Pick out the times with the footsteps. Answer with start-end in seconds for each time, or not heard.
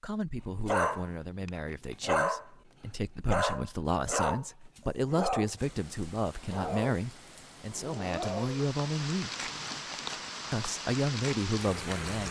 not heard.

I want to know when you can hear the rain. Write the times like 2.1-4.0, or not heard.
5.5-12.2.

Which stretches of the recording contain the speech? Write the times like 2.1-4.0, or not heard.
0.0-9.3, 10.5-12.2.